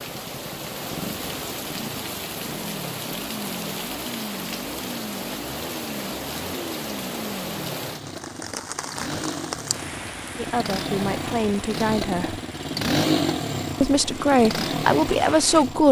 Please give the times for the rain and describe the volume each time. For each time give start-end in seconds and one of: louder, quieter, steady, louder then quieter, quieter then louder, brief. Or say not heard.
0.0-15.8 quieter.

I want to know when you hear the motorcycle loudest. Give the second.
13 s.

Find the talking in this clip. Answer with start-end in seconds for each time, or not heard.
10.3-12.4, 13.8-15.8.